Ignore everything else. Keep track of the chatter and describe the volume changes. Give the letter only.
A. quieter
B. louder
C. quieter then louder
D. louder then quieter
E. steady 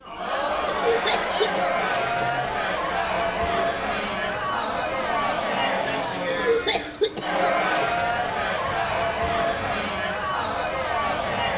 E.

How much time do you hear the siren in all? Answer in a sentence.
The siren can't be heard in this clip.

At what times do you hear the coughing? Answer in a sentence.
You can hear the coughing from 0.7 to 2.3 s and from 6.2 to 8.0 s.